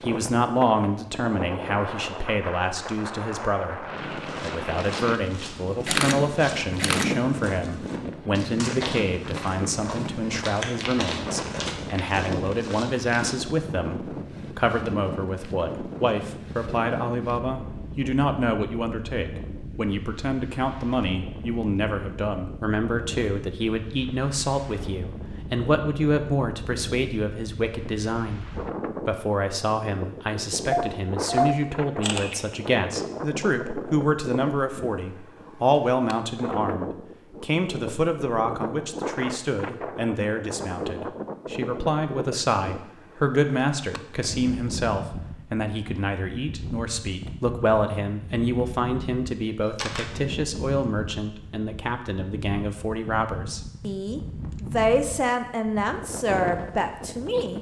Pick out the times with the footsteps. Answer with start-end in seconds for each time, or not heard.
4.0-13.3.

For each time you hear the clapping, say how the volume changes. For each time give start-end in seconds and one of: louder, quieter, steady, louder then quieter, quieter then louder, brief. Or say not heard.
not heard.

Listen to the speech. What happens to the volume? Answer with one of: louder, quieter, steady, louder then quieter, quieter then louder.
steady.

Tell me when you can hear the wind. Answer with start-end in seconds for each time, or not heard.
0.0-57.5.